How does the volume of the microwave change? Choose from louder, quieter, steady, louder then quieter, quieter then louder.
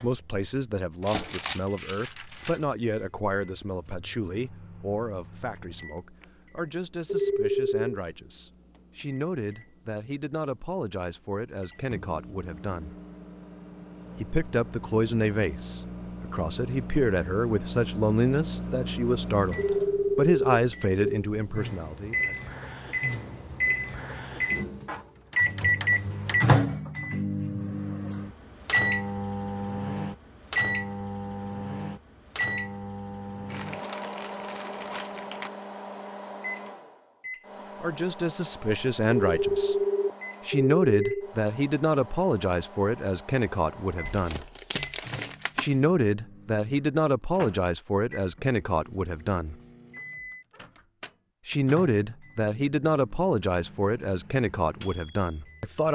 louder then quieter.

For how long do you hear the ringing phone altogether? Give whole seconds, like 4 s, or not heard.
5 s.